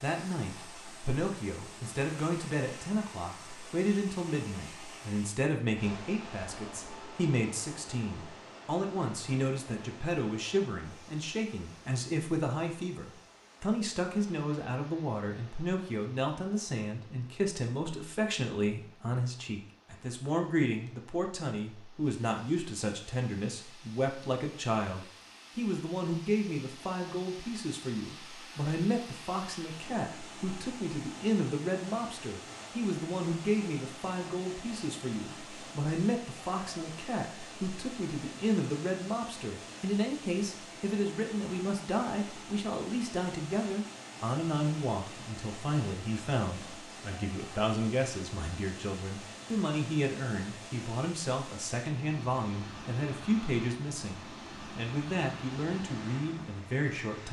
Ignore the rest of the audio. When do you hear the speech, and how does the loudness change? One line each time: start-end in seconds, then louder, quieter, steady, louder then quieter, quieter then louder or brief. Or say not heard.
0.0-57.2 steady.